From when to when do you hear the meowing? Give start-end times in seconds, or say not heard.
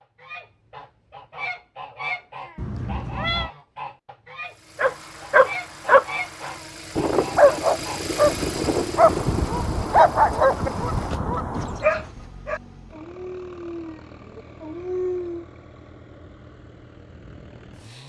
2.5-3.5.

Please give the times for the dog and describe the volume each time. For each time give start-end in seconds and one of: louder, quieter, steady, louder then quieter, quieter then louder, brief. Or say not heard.
4.8-15.4 quieter.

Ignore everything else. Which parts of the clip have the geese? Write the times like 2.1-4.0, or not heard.
0.2-12.1.